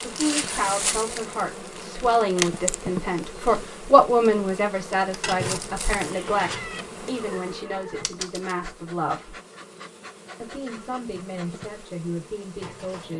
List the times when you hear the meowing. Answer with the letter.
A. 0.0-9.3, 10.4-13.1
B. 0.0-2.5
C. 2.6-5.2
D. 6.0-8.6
D.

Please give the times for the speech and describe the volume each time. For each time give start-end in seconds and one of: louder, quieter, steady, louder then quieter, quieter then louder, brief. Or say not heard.
0.0-9.3 louder then quieter
10.4-13.1 brief.